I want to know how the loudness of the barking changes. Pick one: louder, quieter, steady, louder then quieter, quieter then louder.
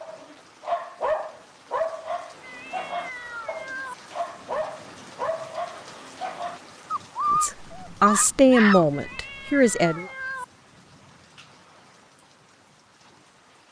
quieter then louder.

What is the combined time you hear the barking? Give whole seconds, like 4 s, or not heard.
9 s.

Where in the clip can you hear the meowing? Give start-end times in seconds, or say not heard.
2.4-4.0, 8.9-10.4.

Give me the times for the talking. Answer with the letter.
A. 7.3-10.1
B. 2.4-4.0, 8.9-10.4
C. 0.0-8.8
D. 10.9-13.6
A.